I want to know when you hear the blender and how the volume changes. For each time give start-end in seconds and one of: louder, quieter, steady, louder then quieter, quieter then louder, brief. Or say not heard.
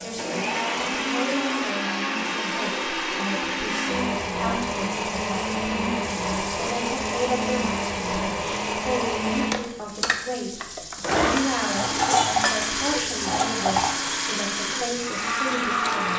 0.0-16.1 steady.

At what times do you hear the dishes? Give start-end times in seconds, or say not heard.
11.1-13.9.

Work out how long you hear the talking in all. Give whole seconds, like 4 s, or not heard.
16 s.